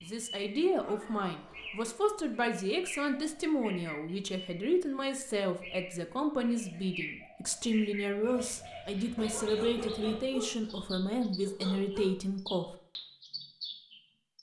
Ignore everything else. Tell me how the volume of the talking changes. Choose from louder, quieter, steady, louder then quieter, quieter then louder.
steady.